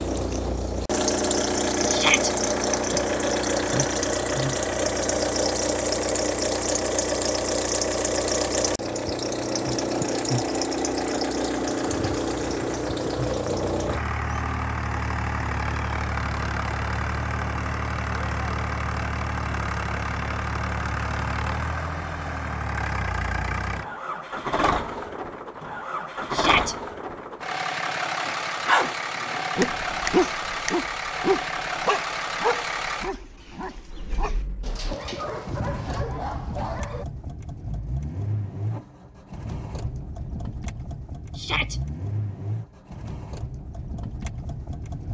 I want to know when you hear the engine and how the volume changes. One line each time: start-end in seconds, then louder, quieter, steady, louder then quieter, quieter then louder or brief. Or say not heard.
0.0-45.0 quieter.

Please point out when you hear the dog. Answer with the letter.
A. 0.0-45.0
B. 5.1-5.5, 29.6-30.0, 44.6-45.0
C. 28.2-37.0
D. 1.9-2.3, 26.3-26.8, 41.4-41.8
C.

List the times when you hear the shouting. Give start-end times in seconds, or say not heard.
1.9-2.3, 26.3-26.8, 41.4-41.8.